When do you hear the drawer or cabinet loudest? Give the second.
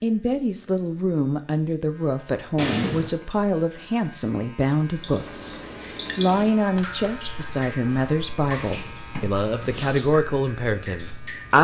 3 s.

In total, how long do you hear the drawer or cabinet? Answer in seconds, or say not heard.
2 s.